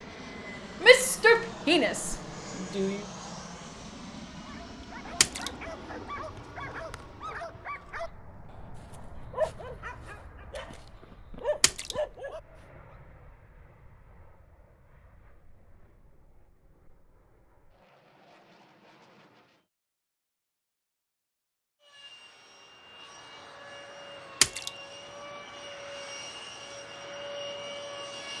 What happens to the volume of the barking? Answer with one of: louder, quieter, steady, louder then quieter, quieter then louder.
louder.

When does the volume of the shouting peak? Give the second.
1 s.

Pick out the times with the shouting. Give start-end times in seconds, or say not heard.
0.8-3.0.